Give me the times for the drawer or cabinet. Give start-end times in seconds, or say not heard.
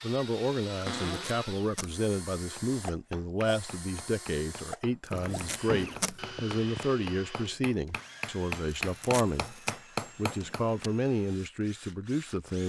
0.8-1.5, 5.1-6.9, 10.2-10.7.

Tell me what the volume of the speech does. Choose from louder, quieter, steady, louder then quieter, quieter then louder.
steady.